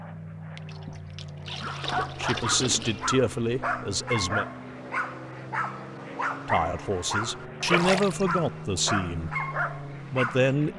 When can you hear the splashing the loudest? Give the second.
8 s.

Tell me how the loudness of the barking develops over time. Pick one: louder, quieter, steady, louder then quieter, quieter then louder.
steady.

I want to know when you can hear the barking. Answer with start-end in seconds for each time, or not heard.
1.6-10.6.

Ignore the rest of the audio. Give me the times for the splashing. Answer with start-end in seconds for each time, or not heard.
0.6-3.0, 7.7-8.3.